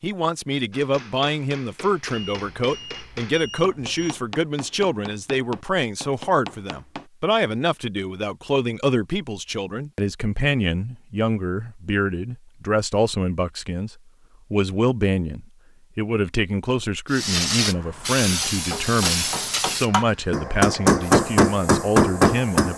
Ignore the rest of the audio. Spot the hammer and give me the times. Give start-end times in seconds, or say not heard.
0.7-7.0, 18.4-22.7.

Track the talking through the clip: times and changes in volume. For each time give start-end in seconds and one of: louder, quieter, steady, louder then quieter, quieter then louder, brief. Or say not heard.
0.0-22.7 steady.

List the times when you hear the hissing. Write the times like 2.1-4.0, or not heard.
17.1-22.7.